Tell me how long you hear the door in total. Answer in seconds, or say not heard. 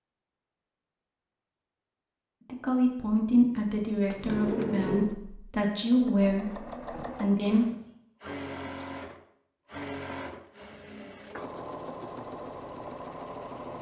2 s.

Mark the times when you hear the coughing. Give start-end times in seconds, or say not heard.
not heard.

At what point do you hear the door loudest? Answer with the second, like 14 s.
5 s.